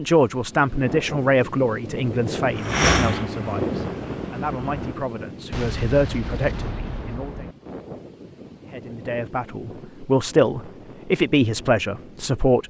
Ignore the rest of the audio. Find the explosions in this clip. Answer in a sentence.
You can hear the explosions from 5.5 to 7.5 s.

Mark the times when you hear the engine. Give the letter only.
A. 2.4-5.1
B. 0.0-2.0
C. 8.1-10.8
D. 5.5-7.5
A.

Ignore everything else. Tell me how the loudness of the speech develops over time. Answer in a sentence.
The volume of the speech goes down, then up.